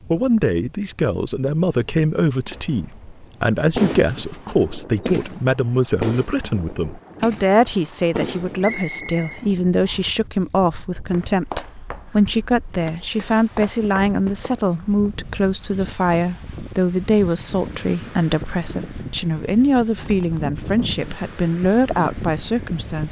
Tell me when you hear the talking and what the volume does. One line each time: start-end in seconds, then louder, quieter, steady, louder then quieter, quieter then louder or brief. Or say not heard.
0.1-23.0 steady.